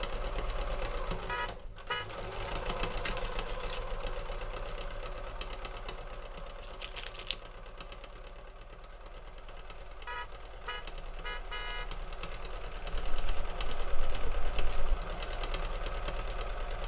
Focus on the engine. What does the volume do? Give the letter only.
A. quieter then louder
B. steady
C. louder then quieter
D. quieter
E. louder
A.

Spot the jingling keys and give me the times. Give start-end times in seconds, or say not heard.
2.0-3.8, 6.6-7.3, 12.9-14.9.